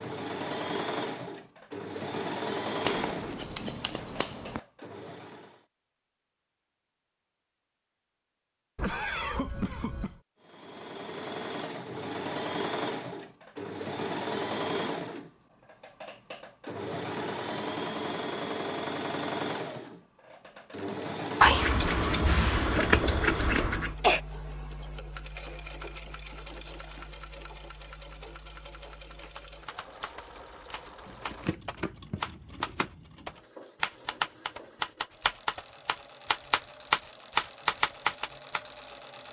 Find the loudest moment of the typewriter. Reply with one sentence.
The loudest moment of the typewriter is at 38 seconds.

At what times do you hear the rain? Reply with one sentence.
The rain can't be heard in this clip.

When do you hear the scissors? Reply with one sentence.
You can hear the scissors from 2.9 to 4.6 s, from 21.4 to 23.9 s and from 31.1 to 33.0 s.